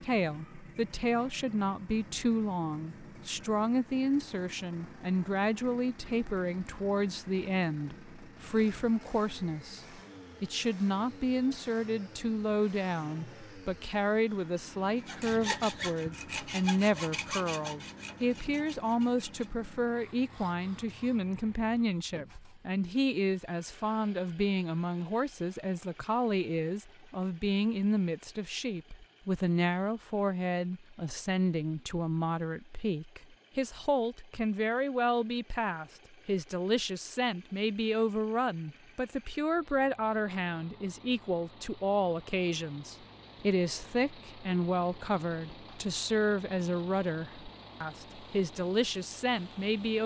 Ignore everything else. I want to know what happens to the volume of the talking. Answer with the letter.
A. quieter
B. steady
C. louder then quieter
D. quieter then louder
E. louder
B.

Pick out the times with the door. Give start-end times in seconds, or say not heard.
not heard.